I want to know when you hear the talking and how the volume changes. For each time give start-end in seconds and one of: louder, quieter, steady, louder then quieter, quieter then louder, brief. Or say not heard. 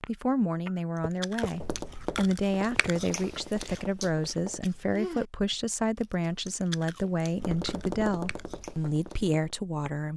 0.1-10.1 steady.